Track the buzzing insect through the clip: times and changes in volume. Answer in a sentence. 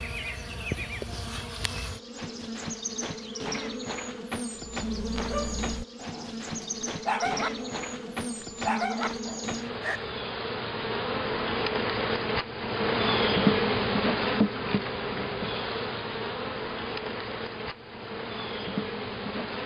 The buzzing insect can be heard from 0.0 to 19.6 s, getting louder then quieter.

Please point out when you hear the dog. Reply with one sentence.
You can hear the dog from 4.7 to 10.1 s.